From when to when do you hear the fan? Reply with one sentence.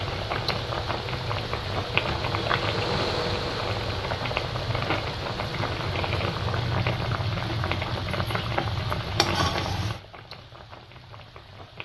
The fan can be heard from 0.0 to 6.7 s.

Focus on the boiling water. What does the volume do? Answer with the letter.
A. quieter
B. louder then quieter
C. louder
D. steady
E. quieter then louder
D.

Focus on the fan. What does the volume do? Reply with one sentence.
The loudness of the fan goes up, then down.